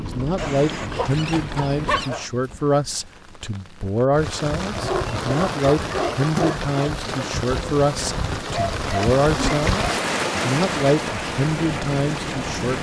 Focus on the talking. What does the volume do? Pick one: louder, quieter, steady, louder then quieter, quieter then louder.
steady.